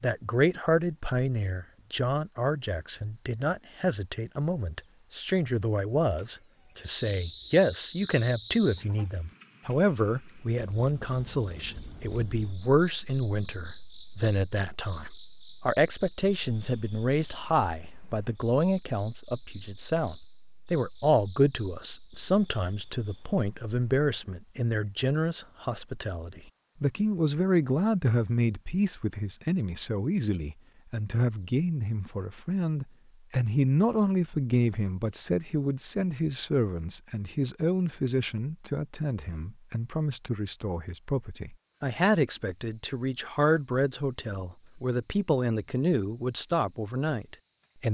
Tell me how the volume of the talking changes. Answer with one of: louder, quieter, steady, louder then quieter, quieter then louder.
steady.